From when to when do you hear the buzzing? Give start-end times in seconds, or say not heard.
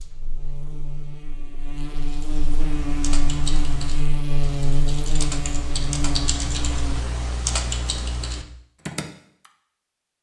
0.0-7.0.